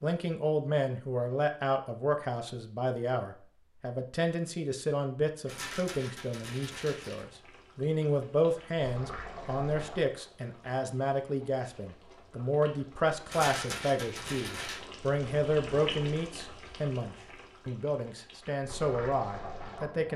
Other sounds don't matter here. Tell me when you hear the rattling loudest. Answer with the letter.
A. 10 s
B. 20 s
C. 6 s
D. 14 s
D.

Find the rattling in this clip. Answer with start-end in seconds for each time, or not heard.
5.5-7.2, 13.2-14.8.